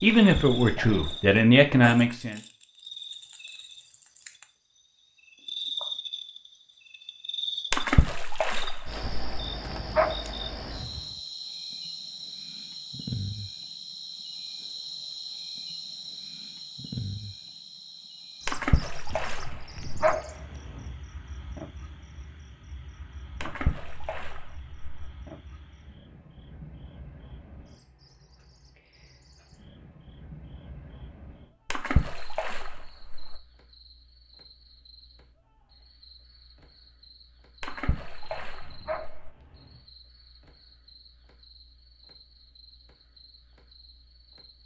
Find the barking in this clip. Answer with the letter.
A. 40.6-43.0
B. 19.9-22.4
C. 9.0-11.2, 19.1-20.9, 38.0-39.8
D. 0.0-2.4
C.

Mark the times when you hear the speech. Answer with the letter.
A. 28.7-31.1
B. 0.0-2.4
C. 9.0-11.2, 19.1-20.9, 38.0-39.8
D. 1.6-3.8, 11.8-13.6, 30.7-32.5
B.